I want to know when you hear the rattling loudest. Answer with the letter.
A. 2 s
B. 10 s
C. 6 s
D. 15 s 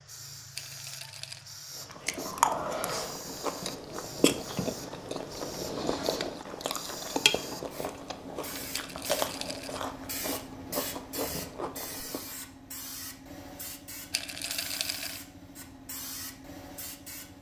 D.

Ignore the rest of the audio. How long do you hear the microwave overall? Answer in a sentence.
The microwave can't be heard in this clip.